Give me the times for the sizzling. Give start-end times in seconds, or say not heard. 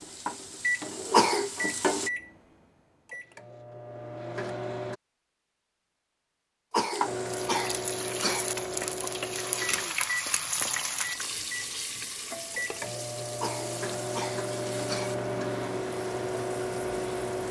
0.0-2.1, 6.9-17.4.